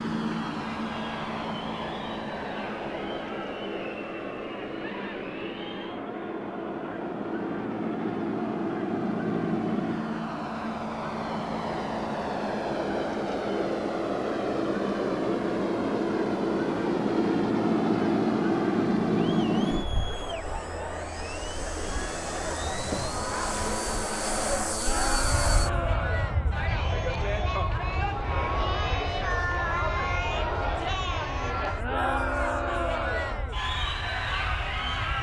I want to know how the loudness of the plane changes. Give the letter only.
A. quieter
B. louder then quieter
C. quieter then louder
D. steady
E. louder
B.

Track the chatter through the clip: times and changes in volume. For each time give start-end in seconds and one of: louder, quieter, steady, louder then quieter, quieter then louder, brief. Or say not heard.
0.2-35.1 louder.